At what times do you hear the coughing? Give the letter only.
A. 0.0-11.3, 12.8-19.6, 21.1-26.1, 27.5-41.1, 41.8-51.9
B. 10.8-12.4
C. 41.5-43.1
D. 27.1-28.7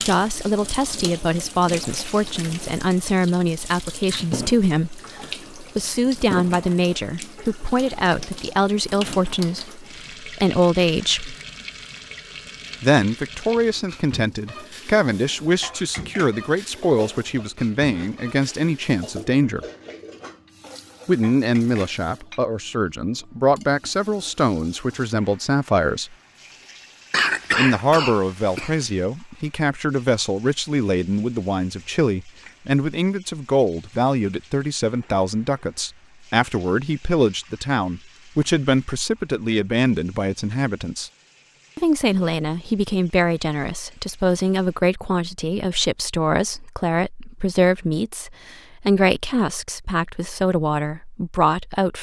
D.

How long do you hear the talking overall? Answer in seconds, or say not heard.
47 s.